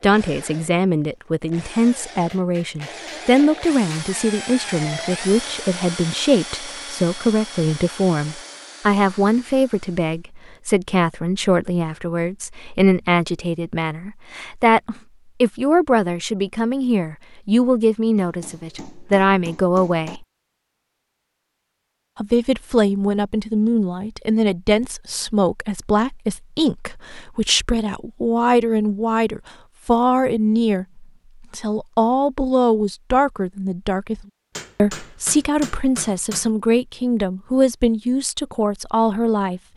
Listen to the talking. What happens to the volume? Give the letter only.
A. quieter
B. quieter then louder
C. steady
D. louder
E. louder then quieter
C.